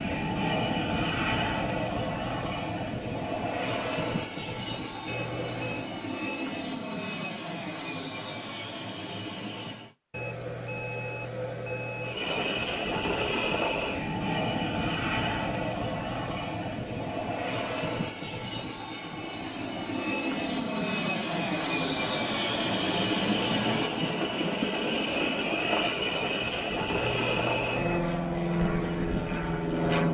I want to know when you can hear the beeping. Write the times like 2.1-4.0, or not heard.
5.0-5.9, 10.1-12.2, 26.9-28.0.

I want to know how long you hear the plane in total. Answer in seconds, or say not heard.
28 s.